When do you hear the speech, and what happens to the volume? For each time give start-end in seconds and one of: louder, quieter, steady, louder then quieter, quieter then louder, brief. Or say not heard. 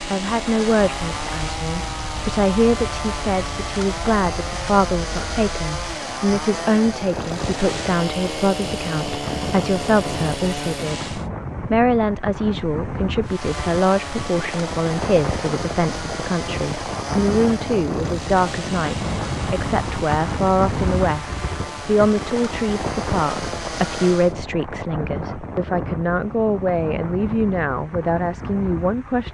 0.1-29.2 steady.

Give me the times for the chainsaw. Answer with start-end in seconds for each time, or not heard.
0.0-11.3, 13.2-24.4.